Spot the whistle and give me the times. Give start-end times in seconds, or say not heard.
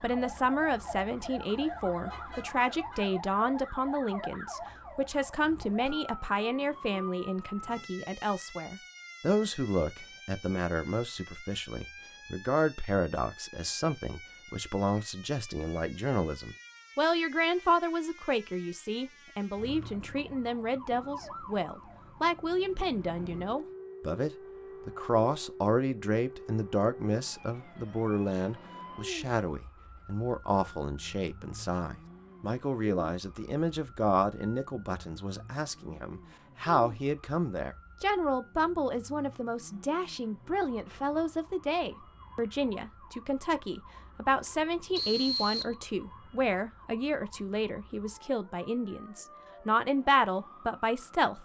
45.0-45.8.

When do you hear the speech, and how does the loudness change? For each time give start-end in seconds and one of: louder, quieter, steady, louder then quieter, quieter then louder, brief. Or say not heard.
0.0-51.4 steady.